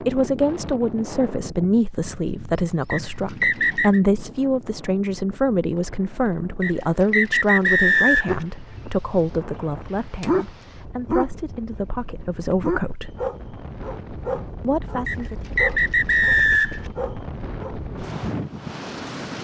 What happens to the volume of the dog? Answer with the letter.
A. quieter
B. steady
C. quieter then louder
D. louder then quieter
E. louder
D.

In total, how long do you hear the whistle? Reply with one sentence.
You can hear the whistle for 5 seconds altogether.